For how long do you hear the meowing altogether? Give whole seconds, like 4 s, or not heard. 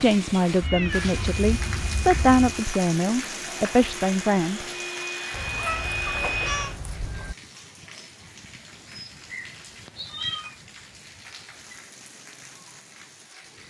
5 s.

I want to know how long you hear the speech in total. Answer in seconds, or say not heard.
5 s.